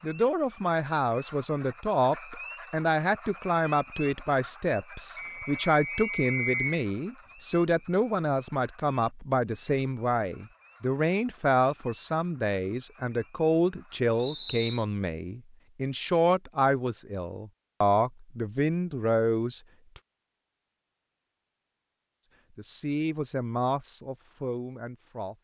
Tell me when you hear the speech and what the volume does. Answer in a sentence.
The speech can be heard from 0.0 to 20.0 s, at a steady volume; and briefly from 22.5 to 25.4 s.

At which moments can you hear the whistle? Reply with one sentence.
The whistle can be heard from 5.2 to 6.8 s and from 14.2 to 14.8 s.